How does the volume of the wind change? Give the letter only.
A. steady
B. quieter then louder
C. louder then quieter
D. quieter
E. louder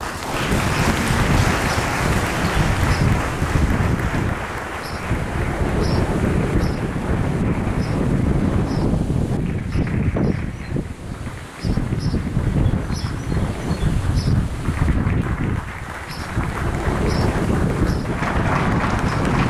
A.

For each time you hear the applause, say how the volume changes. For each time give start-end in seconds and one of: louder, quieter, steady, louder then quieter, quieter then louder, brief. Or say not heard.
0.0-19.4 quieter then louder.